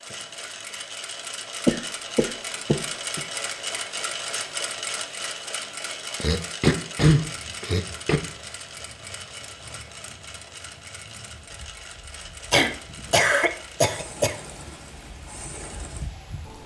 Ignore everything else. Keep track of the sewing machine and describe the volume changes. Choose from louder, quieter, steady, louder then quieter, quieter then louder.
quieter.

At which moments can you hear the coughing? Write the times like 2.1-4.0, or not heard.
1.6-3.2, 6.2-8.2, 12.5-14.3.